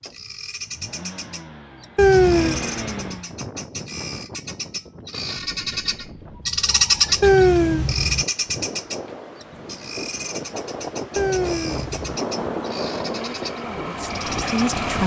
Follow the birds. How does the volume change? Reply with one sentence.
The loudness of the birds goes up, then down.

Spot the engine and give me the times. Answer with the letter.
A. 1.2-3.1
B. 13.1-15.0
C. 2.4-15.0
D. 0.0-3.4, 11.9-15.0
D.